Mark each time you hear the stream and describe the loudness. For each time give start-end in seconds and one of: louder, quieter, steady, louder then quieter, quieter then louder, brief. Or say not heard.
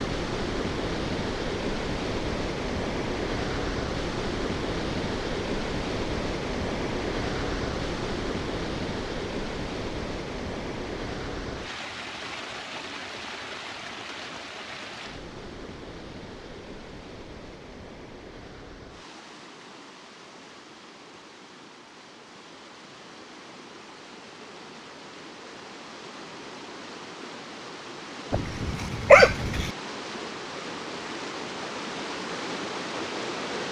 0.0-33.6 quieter then louder.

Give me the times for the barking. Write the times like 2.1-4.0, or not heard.
28.3-29.7.